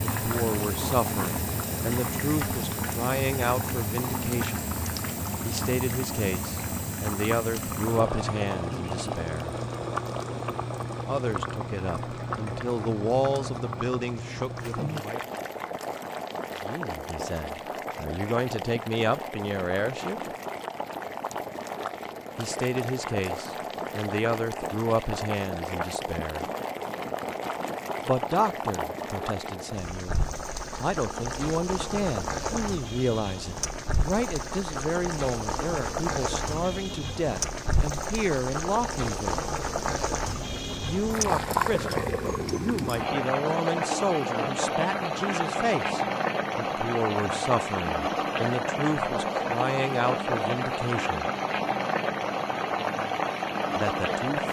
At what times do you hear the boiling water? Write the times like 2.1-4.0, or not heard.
0.0-54.4.